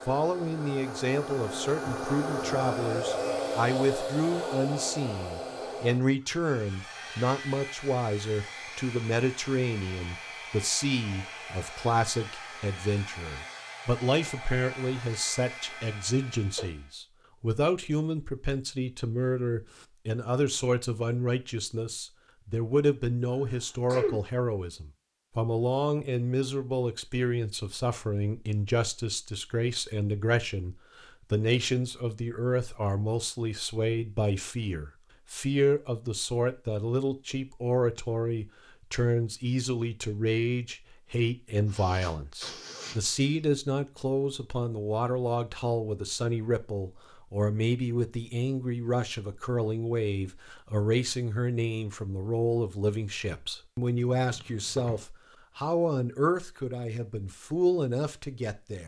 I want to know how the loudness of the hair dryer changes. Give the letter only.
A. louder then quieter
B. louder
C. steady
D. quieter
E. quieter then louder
D.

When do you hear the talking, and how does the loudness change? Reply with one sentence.
You can hear the talking from 0.1 to 58.8 s, at a steady volume.